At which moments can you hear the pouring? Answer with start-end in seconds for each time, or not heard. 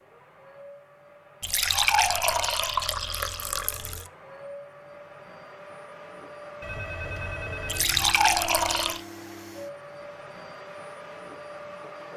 1.4-4.0, 7.7-9.0.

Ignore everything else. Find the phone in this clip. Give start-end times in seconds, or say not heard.
6.6-8.2.